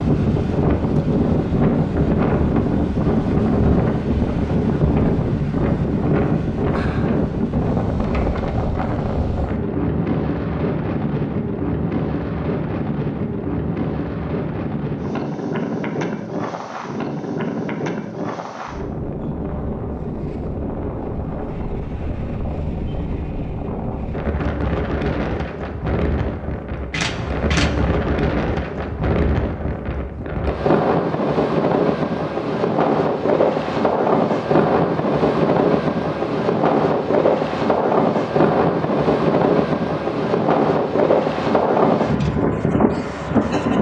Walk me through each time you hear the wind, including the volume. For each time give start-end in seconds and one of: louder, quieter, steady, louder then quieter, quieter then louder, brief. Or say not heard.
0.0-43.7 quieter then louder.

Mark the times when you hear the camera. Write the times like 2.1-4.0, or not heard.
26.9-27.7.